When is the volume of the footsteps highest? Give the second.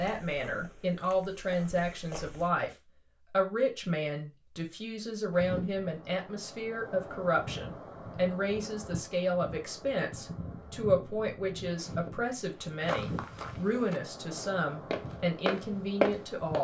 16 s.